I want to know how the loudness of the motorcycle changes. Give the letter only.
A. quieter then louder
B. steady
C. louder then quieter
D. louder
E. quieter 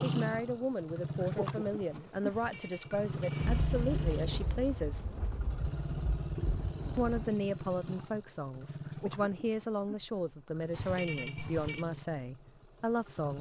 E.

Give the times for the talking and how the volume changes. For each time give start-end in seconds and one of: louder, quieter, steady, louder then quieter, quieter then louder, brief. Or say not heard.
0.0-5.0 steady
7.0-13.3 steady.